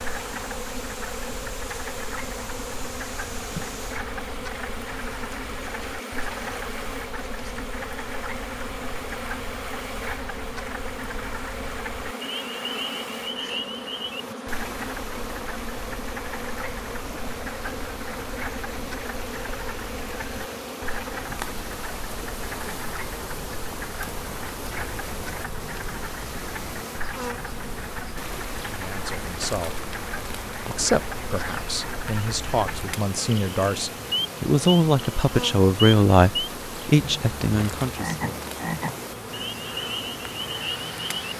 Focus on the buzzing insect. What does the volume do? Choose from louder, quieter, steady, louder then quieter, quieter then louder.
steady.